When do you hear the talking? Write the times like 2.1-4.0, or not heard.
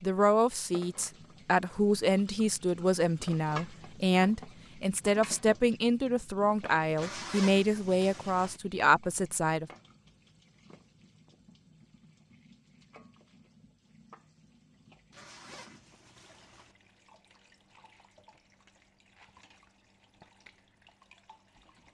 0.0-9.7.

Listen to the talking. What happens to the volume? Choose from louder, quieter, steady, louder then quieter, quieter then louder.
steady.